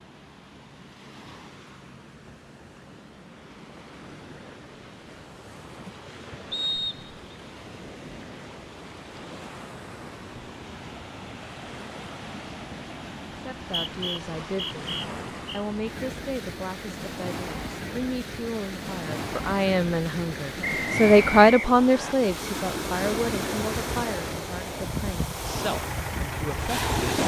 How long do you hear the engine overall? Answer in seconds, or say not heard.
2 s.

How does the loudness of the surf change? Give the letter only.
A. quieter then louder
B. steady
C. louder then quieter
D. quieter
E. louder
E.